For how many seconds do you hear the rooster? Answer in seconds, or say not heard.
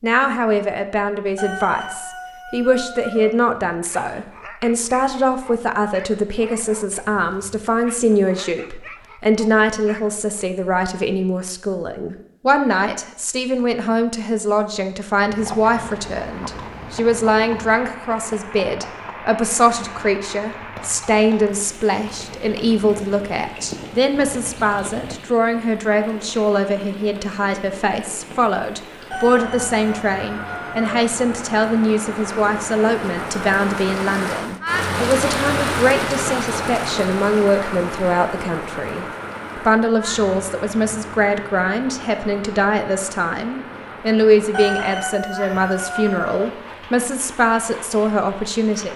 6 s.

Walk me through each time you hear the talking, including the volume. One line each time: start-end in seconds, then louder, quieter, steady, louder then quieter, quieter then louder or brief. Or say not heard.
0.0-48.9 steady.